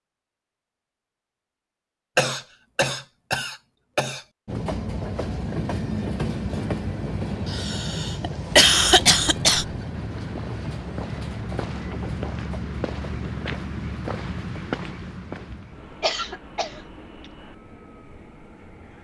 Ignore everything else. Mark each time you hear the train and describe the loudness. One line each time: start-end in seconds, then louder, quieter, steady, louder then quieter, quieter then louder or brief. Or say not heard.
4.5-18.9 quieter.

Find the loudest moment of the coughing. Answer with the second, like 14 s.
9 s.